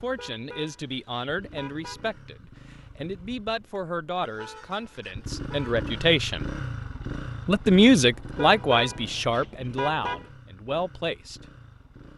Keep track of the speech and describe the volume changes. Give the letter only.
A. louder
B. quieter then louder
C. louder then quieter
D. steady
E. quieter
C.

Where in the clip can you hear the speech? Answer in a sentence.
The speech can be heard from 0.0 to 6.5 s and from 7.5 to 11.4 s.